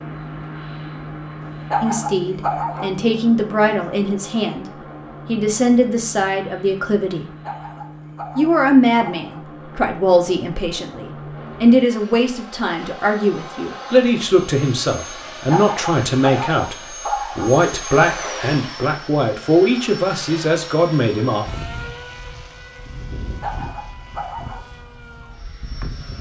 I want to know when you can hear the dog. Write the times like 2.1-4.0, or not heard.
1.4-2.9, 7.4-9.4, 15.2-17.5, 23.4-24.6.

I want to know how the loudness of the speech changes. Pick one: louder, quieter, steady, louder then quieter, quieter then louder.
steady.